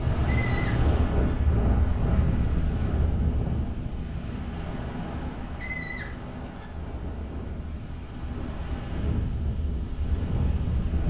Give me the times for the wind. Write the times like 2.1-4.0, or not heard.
0.0-11.0.